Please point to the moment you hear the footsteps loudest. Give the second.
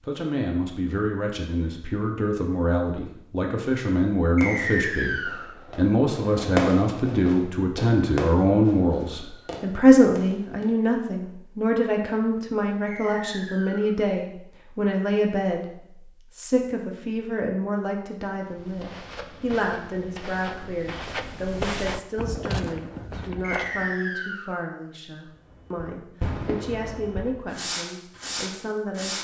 22 s.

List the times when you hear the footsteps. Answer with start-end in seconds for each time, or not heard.
18.4-23.9.